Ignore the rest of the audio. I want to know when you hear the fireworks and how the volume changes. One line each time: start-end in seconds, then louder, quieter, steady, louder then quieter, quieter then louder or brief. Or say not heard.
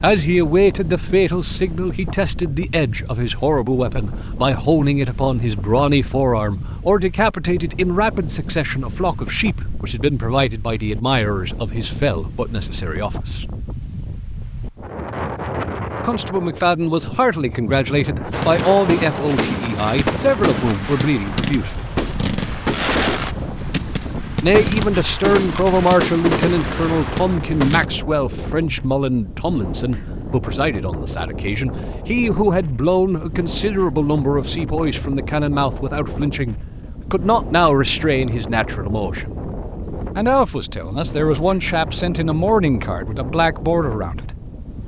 18.3-27.9 steady.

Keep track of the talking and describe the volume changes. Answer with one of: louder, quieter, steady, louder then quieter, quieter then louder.
steady.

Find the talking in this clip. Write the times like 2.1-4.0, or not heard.
0.0-13.5, 16.0-21.9, 24.4-39.4, 40.1-44.3.